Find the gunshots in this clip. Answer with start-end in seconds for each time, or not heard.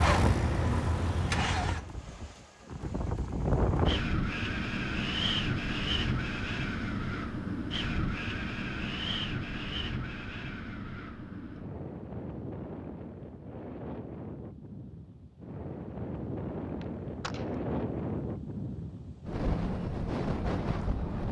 16.8-17.6.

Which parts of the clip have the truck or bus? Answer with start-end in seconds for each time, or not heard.
0.0-1.9.